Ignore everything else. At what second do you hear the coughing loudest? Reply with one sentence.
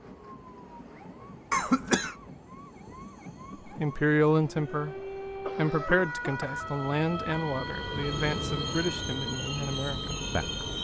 The loudest moment of the coughing is at 2 seconds.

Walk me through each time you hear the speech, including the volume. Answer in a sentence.
You can hear the speech from 3.8 to 10.6 s, getting quieter.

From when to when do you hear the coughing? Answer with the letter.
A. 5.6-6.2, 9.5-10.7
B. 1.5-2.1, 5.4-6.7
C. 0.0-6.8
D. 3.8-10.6
B.